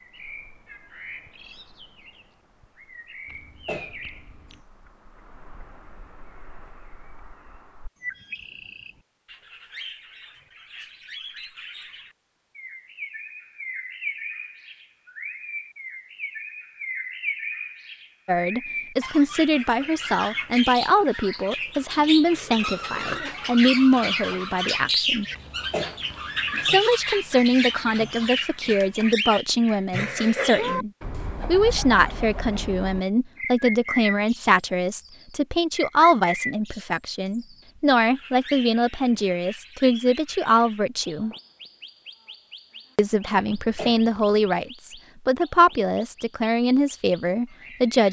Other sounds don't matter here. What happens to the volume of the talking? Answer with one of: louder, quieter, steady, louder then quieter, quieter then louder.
steady.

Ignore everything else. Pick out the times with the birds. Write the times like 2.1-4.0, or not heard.
0.0-48.0.